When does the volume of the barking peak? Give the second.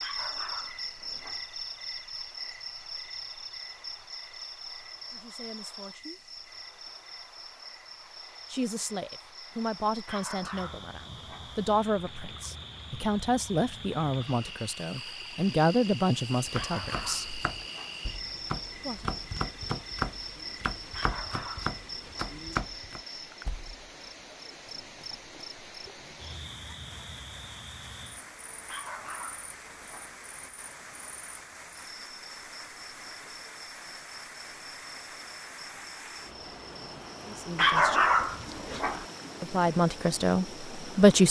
38 s.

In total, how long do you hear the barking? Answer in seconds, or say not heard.
9 s.